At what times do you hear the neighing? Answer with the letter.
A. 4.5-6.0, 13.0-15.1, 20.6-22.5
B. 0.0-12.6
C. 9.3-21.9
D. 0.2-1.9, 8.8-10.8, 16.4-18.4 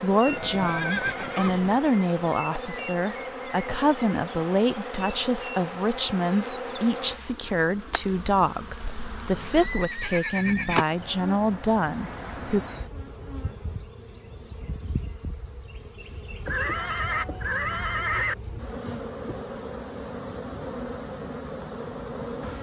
D.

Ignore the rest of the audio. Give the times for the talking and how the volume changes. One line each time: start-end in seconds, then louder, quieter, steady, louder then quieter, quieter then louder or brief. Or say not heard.
0.0-12.6 steady.